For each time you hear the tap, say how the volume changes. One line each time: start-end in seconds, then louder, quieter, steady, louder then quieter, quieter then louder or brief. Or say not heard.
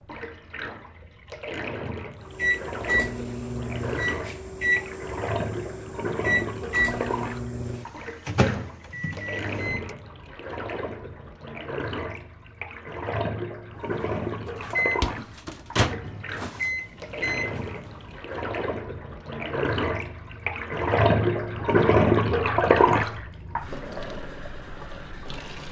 0.0-25.6 louder.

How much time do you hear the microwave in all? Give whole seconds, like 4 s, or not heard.
12 s.